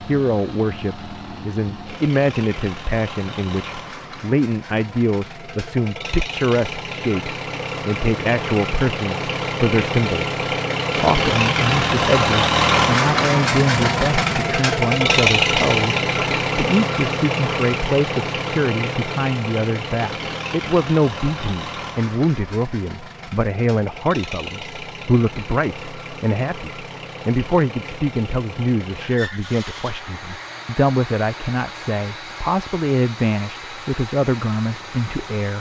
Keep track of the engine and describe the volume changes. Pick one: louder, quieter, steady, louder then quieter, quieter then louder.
louder then quieter.